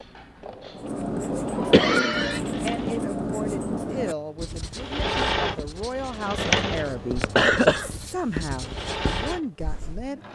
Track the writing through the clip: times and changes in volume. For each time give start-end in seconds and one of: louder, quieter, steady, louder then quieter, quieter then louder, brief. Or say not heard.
0.8-10.1 quieter then louder.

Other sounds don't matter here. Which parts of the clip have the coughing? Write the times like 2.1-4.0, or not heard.
1.7-2.4, 7.2-7.9.